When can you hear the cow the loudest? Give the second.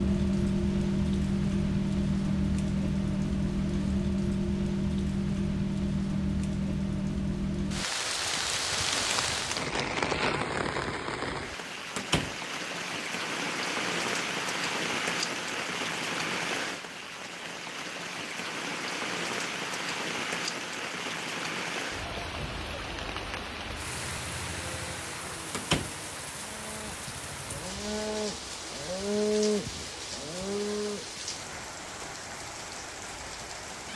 29 s.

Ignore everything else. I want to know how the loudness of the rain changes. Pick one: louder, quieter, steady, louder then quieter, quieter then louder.
quieter.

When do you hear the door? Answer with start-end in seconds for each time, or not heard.
11.9-12.3, 25.5-25.9.